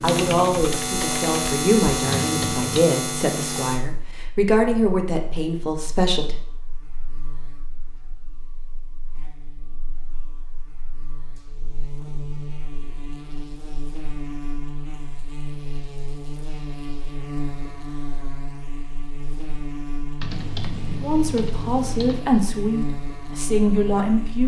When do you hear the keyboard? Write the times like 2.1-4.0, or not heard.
0.0-2.6, 20.2-22.2.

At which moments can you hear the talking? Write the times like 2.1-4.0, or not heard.
0.0-6.3, 21.0-24.4.